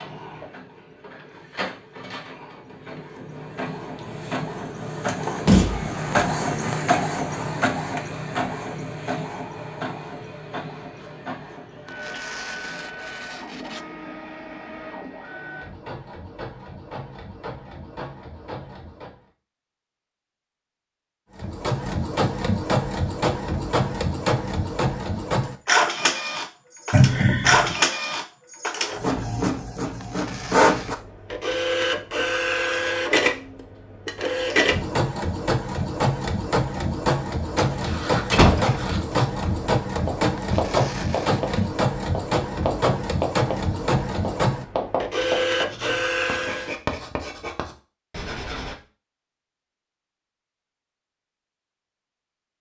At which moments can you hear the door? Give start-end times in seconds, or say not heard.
5.5-6.8, 26.9-27.8, 37.5-38.9.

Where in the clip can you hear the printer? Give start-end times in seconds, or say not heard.
0.0-19.2, 21.4-46.8.